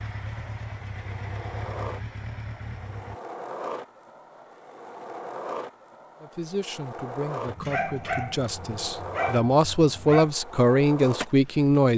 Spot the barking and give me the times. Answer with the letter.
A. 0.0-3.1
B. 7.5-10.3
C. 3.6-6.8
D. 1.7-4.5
B.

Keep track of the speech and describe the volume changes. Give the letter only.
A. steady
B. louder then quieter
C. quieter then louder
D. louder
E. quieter
D.